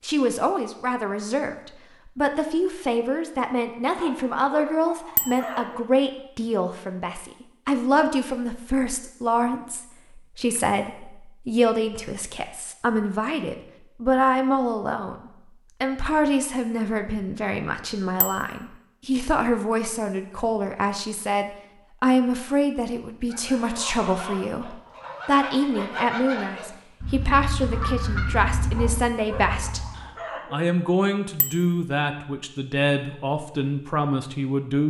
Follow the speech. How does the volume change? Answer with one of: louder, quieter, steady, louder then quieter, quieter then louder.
steady.